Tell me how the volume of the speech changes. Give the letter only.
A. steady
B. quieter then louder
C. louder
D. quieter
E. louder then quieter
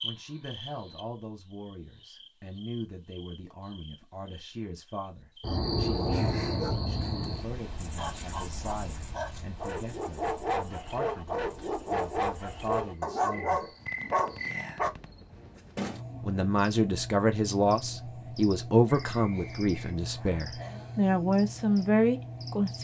C.